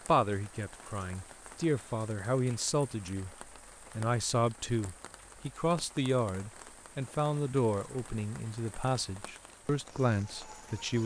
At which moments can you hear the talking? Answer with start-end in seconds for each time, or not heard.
0.1-3.4, 4.0-11.0.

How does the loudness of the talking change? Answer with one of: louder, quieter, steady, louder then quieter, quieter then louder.
steady.